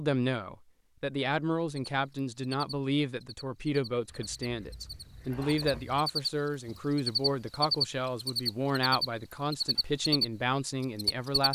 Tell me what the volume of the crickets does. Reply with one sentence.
The loudness of the crickets goes up.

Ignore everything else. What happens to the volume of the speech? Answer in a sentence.
The volume of the speech stays about the same.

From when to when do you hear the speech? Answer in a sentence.
You can hear the speech from 0.0 to 11.5 s.